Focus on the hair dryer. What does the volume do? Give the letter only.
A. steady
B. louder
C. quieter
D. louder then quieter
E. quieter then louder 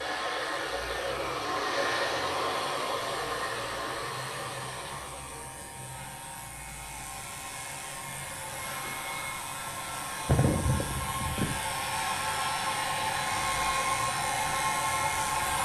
E.